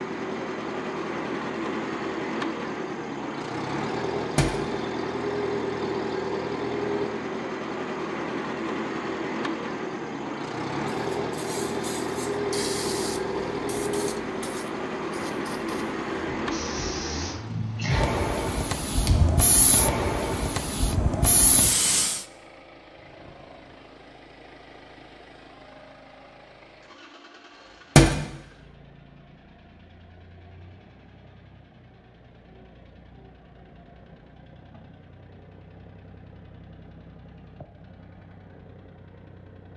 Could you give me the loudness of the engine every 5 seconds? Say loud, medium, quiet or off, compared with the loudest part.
loud, loud, loud, loud, quiet, quiet, quiet, quiet.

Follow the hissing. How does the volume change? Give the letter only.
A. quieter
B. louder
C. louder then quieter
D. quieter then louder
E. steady
D.